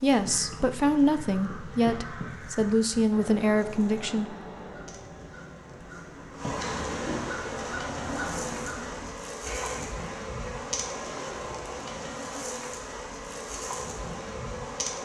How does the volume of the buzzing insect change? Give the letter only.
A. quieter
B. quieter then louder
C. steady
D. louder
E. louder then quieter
D.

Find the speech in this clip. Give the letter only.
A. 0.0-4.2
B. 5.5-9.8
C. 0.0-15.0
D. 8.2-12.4
A.